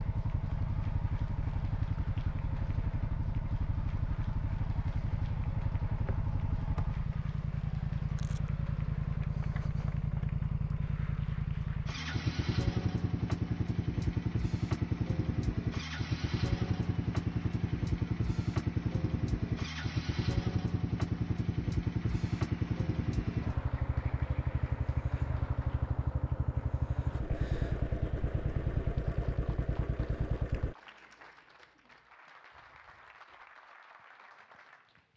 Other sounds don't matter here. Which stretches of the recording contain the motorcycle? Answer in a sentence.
You can hear the motorcycle from 0.0 to 30.8 s.